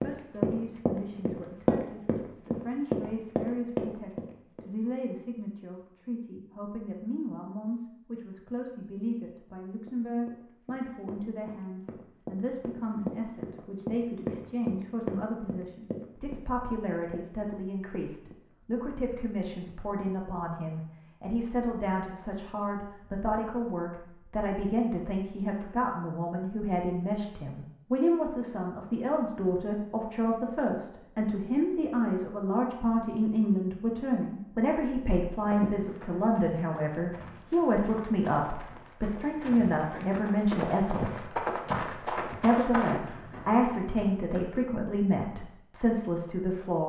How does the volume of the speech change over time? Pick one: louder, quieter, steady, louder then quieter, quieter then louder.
louder.